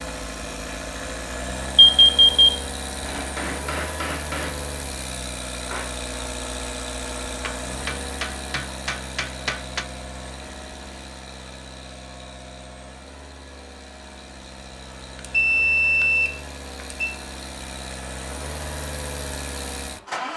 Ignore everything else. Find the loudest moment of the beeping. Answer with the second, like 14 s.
2 s.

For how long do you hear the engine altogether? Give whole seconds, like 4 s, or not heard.
20 s.